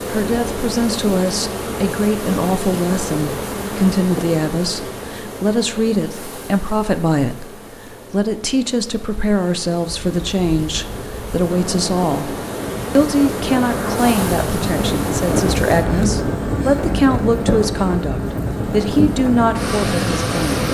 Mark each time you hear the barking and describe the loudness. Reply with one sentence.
You can't hear the barking here.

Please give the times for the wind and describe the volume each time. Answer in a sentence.
The wind can be heard from 9.8 to 20.6 s, getting louder.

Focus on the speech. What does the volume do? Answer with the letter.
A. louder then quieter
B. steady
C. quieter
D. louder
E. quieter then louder
B.